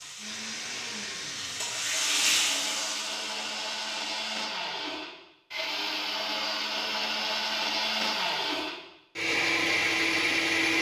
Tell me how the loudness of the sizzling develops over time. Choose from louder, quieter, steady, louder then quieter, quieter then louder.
louder then quieter.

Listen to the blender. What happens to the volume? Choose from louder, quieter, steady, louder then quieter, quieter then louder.
louder.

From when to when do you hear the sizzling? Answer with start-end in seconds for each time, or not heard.
0.0-4.5.